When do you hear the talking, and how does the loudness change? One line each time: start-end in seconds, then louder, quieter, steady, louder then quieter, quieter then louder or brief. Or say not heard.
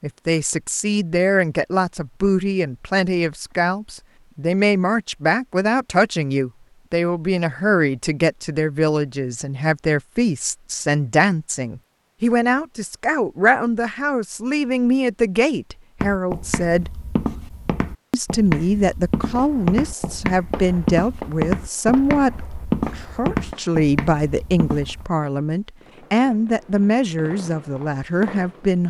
0.0-16.9 steady
18.1-28.8 steady.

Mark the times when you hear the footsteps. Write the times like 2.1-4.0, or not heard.
16.0-25.1.